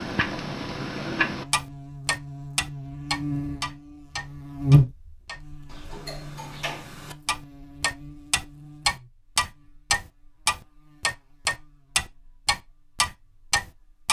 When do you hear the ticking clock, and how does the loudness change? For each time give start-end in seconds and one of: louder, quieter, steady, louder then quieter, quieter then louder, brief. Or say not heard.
0.0-14.0 quieter then louder.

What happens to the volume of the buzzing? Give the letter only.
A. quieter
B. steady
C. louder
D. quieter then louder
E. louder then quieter
E.